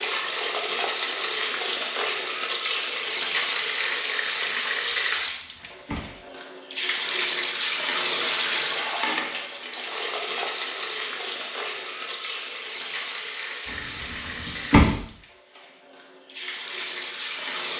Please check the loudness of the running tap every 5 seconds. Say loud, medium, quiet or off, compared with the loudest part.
loud, loud, medium, medium.